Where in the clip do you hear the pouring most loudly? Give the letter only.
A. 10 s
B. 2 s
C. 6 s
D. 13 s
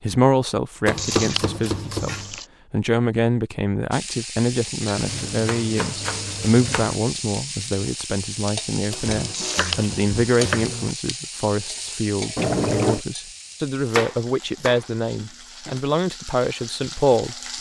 D.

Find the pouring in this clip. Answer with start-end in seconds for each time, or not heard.
0.9-2.5, 9.3-9.9, 12.3-13.1.